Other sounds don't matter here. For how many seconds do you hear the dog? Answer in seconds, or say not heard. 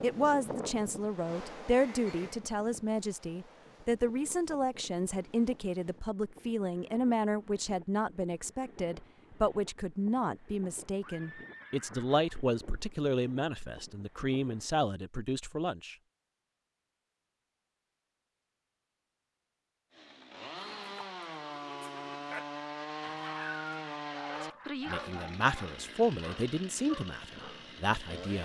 5 s.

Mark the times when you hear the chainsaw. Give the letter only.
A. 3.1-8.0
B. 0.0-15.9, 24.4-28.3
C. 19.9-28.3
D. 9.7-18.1
C.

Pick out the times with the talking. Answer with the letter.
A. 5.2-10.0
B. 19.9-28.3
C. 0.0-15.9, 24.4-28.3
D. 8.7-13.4
C.